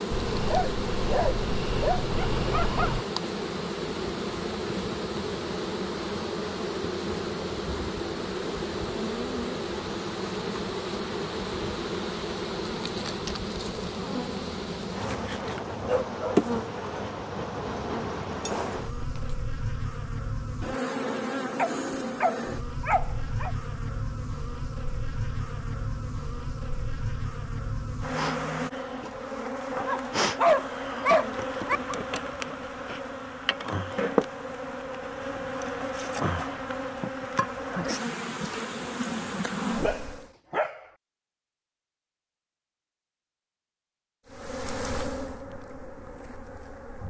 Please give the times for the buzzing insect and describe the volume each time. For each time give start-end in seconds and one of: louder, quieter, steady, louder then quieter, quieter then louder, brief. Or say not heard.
0.0-40.3 steady
44.3-47.0 brief.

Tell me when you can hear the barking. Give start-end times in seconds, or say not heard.
0.1-3.0, 15.1-16.4, 21.6-23.5, 29.8-31.8, 39.8-40.9.